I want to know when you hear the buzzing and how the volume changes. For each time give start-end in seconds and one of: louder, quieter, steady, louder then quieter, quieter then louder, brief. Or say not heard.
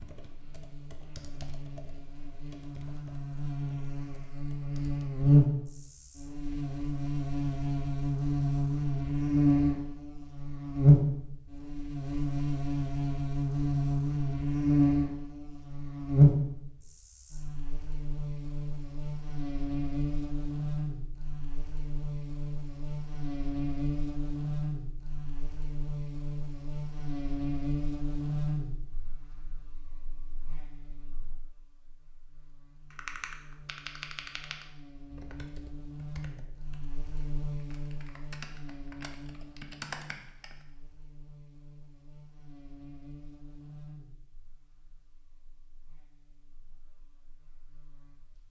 0.0-48.4 quieter.